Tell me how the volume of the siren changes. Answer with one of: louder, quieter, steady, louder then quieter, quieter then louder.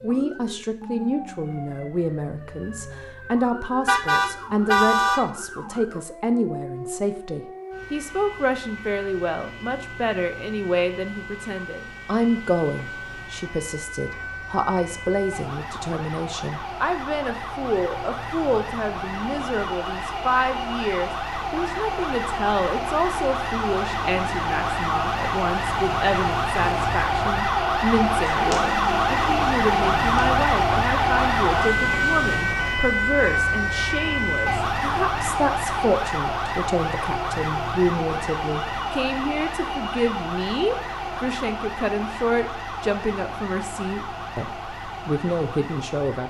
louder then quieter.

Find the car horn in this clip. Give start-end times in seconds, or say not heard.
3.9-5.3.